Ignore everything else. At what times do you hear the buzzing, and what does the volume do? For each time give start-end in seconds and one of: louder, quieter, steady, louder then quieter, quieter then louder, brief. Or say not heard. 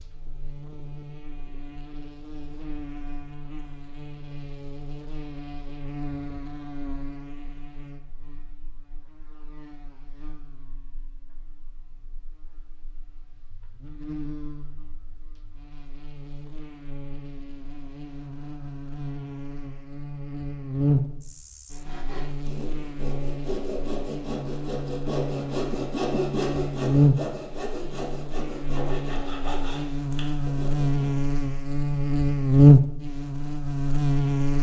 0.0-34.5 quieter then louder.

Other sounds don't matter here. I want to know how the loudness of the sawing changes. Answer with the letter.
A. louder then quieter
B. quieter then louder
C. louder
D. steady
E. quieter
A.